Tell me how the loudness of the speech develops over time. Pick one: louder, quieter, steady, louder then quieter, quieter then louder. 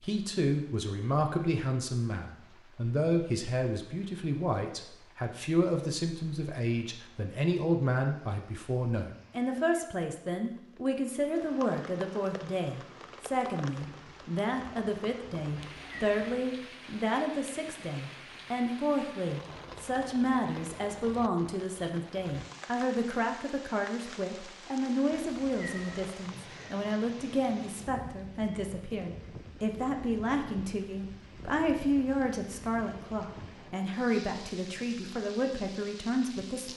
steady.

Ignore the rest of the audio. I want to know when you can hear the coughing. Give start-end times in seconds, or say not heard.
not heard.